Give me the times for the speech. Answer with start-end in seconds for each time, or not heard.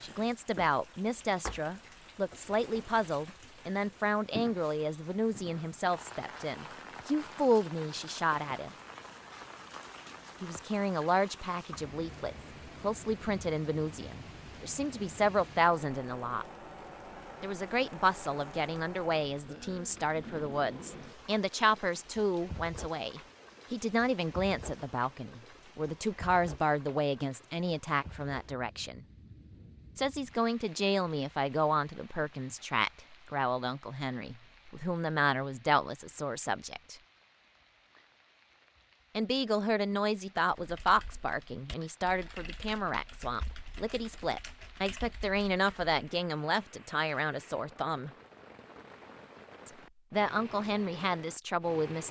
0.0-8.8, 10.4-16.4, 17.4-29.1, 29.9-37.0, 39.1-48.1, 49.6-52.0.